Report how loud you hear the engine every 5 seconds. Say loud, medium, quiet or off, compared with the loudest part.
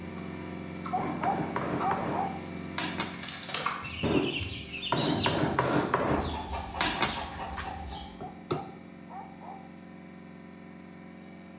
loud, medium, medium.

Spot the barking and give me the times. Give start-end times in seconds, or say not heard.
0.9-2.3, 8.2-9.6.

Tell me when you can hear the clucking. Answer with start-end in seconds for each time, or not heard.
0.1-8.2.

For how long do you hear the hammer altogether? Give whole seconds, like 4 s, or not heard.
8 s.